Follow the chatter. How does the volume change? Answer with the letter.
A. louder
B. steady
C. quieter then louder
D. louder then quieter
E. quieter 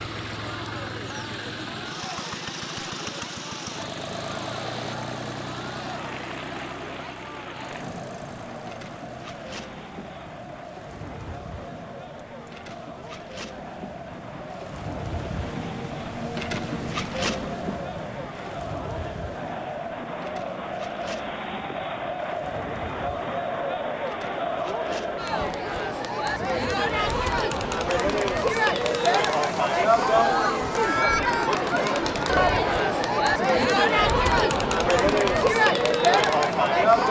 A.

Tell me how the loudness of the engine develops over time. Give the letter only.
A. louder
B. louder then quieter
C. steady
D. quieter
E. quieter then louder
D.